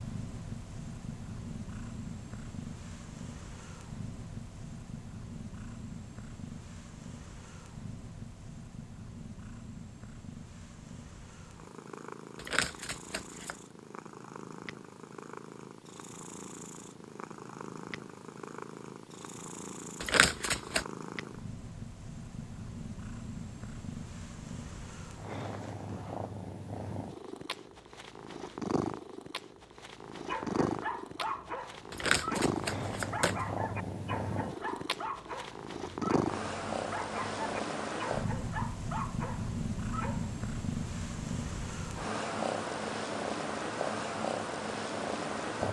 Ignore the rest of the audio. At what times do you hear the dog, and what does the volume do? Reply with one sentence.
The dog can be heard from 30.2 to 40.4 s, at a steady volume.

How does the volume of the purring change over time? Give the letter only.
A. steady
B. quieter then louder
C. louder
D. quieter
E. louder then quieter
C.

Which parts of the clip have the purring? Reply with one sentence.
You can hear the purring from 0.0 to 45.6 s.